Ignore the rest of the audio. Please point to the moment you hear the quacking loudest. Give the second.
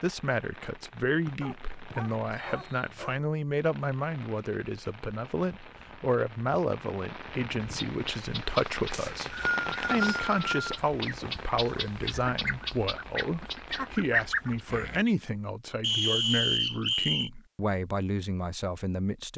14 s.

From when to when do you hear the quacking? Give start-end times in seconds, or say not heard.
7.6-15.1.